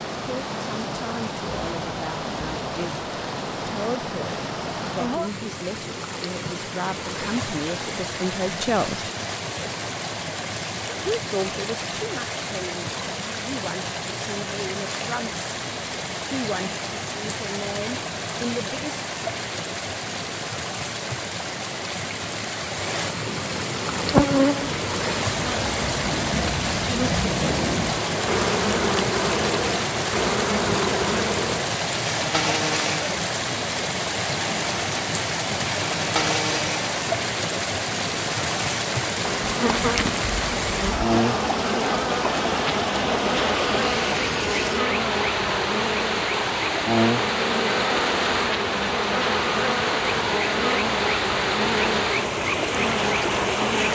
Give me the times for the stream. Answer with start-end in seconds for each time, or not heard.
0.0-53.9.